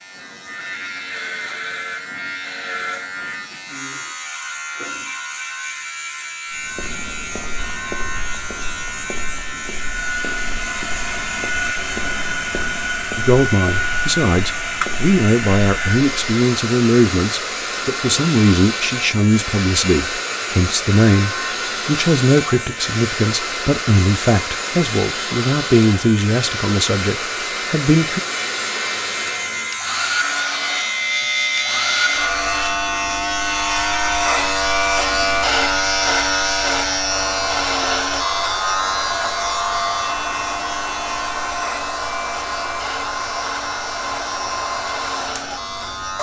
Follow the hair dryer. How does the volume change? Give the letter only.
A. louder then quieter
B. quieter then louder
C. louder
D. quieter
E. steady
E.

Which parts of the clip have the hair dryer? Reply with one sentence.
The hair dryer can be heard from 9.8 to 46.1 s.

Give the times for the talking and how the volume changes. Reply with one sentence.
You can hear the talking from 13.2 to 28.2 s, at a steady volume.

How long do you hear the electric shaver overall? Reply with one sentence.
The electric shaver can be heard for 46 seconds in total.